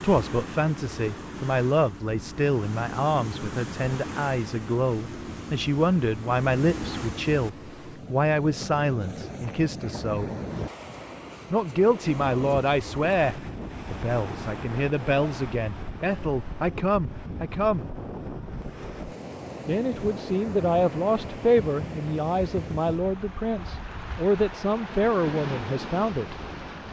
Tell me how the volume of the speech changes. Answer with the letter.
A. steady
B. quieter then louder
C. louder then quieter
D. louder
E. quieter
A.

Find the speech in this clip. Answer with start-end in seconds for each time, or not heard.
0.0-10.3, 11.5-17.9, 19.6-26.4.